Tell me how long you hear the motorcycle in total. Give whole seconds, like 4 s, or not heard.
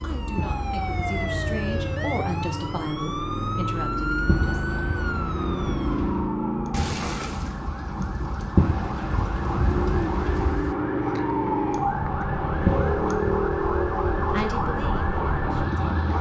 16 s.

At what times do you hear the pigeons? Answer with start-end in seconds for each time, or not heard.
0.3-2.0, 4.2-6.3, 8.6-10.6, 12.7-14.5.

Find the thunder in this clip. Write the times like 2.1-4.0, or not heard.
6.7-10.8.